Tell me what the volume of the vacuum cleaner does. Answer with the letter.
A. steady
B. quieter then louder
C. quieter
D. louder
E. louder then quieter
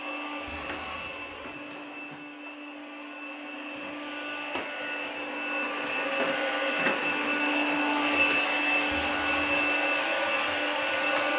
D.